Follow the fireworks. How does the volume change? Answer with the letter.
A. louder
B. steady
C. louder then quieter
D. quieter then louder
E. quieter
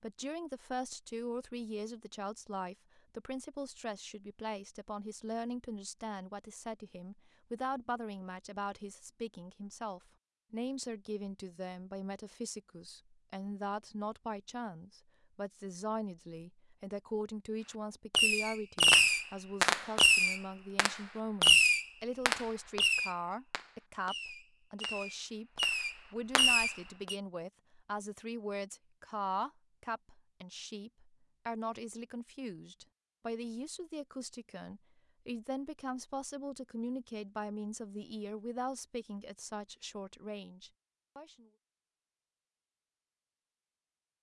D.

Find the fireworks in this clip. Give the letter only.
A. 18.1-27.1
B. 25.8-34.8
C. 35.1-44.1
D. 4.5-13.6
A.